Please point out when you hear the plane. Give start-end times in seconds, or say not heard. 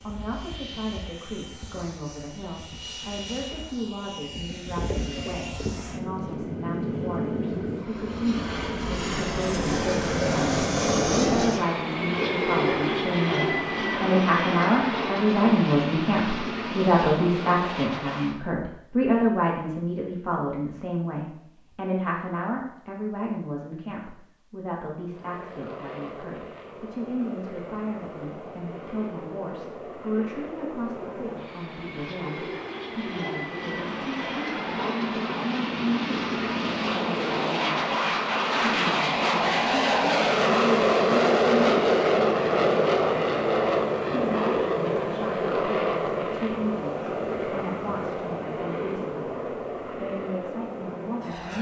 0.0-18.4, 25.1-51.5.